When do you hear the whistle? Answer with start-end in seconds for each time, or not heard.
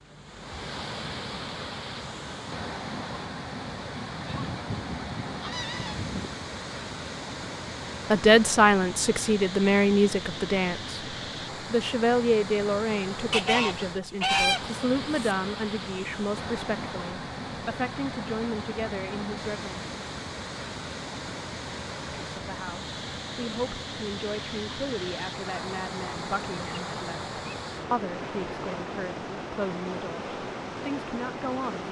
not heard.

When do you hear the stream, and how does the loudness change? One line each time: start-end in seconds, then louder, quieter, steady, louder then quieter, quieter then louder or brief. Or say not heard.
0.0-31.8 steady.